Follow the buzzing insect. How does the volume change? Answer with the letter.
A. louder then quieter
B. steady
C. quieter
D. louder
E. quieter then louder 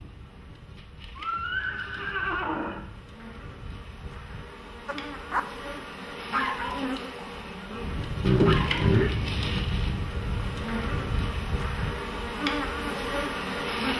D.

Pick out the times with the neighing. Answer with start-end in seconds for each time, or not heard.
1.1-2.9, 8.2-9.1.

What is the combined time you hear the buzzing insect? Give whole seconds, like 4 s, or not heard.
14 s.